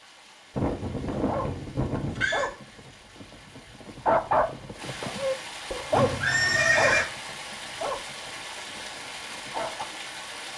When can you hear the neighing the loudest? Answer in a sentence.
The loudest moment of the neighing is at 7 seconds.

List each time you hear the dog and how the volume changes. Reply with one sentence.
The dog can be heard from 1.1 to 9.8 s, getting louder then quieter.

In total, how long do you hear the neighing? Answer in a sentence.
The neighing can be heard for 3 seconds in total.